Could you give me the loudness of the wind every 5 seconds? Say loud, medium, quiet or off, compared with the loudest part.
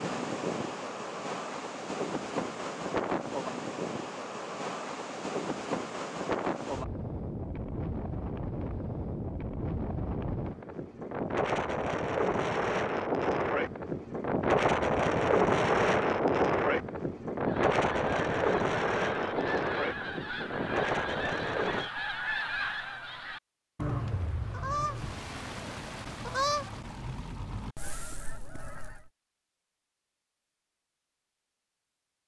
medium, medium, loud, loud, medium, off, off.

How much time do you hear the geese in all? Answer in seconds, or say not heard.
12 s.